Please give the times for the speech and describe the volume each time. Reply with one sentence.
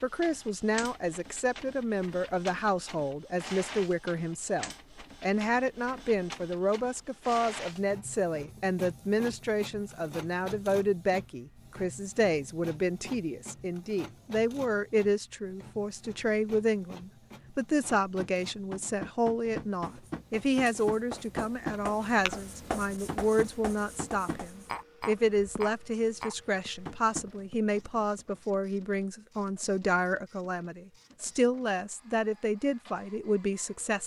You can hear the speech from 0.0 to 34.0 s, at a steady volume.